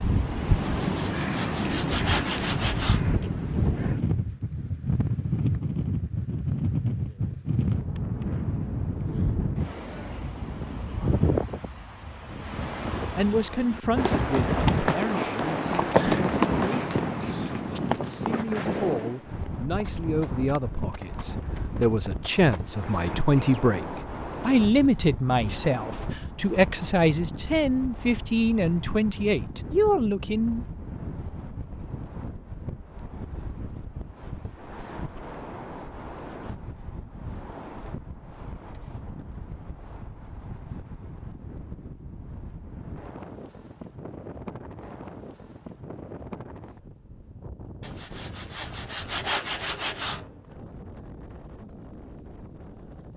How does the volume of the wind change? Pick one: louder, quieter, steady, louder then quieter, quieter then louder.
quieter.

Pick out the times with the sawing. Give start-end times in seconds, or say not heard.
0.6-3.2, 47.8-50.5.